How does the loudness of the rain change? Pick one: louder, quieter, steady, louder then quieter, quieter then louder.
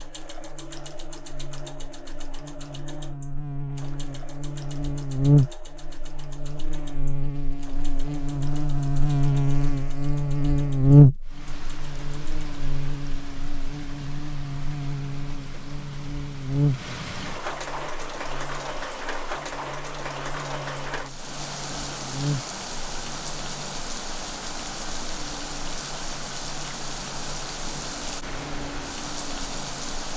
louder.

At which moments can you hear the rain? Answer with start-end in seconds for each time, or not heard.
11.2-30.1.